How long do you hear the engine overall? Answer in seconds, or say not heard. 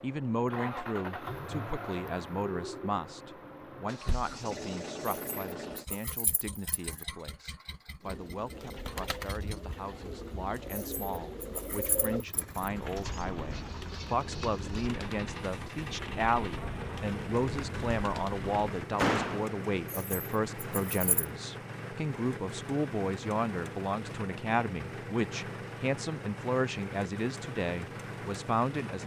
29 s.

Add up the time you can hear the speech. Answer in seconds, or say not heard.
29 s.